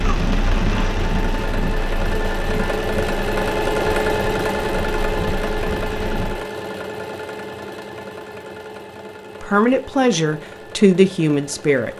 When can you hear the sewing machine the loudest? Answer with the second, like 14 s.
4 s.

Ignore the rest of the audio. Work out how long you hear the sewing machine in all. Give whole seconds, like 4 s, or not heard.
12 s.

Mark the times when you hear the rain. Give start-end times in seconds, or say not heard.
0.0-6.5.